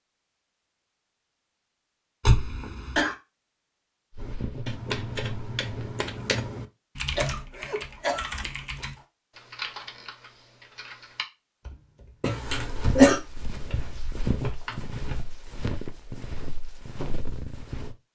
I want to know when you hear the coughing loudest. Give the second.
13 s.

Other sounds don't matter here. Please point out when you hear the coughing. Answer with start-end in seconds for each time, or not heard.
2.2-3.1, 7.0-8.8, 12.2-13.2.